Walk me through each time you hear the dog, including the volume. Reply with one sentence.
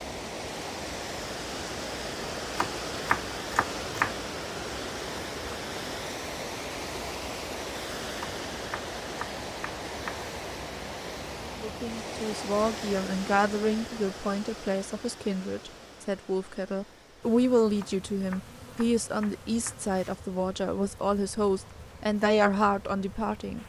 The dog can't be heard in this clip.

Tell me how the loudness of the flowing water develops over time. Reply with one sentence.
The loudness of the flowing water goes down.